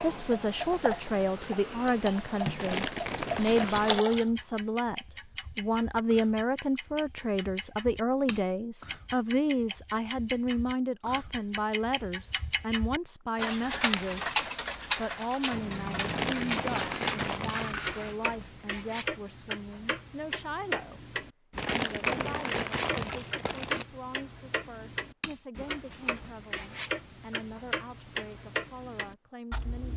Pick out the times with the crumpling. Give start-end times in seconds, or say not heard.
2.5-4.0, 16.0-17.8, 21.6-23.9.